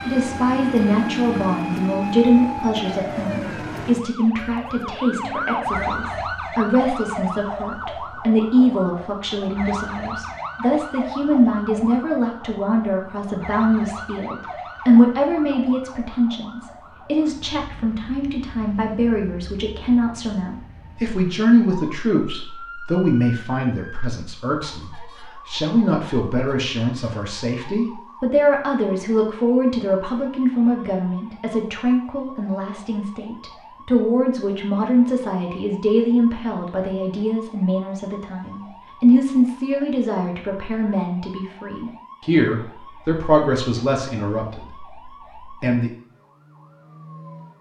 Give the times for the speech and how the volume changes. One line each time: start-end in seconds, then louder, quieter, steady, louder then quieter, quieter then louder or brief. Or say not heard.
0.1-45.9 steady.